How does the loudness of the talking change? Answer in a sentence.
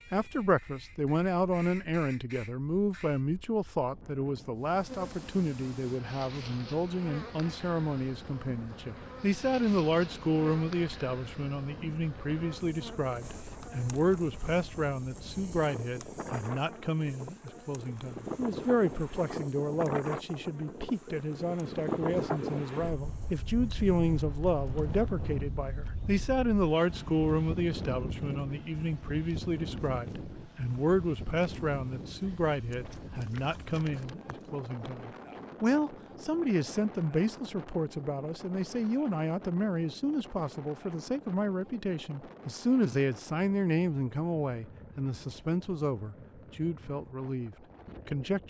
The volume of the talking stays about the same.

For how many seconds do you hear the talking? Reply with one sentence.
The talking can be heard for 48 seconds in total.